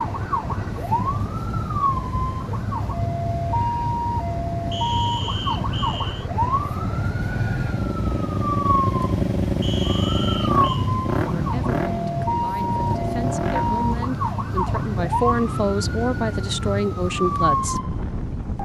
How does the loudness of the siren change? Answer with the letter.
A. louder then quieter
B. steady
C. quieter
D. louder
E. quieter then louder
B.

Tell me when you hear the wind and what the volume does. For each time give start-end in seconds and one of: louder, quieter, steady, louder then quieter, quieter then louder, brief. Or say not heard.
0.0-18.6 steady.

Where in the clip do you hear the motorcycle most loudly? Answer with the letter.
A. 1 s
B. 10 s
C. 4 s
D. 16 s
B.